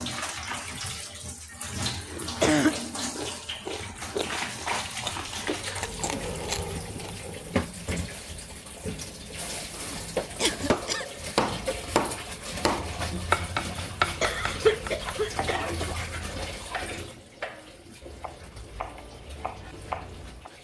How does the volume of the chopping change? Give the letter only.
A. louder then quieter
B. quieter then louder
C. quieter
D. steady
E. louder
C.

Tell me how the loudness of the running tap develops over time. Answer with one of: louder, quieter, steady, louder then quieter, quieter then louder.
quieter.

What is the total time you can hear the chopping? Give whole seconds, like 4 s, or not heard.
11 s.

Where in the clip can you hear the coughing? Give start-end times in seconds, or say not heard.
1.5-3.1, 9.8-11.1, 14.2-15.6.